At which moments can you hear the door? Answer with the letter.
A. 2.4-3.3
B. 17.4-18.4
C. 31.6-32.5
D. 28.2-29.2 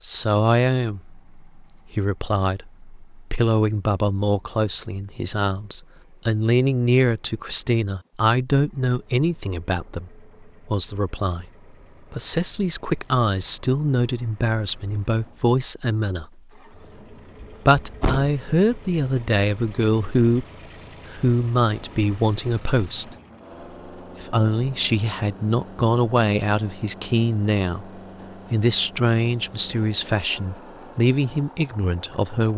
B.